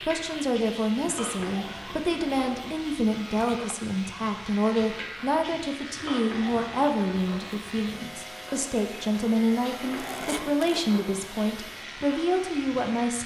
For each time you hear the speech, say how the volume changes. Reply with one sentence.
You can hear the speech from 0.1 to 13.2 s, at a steady volume.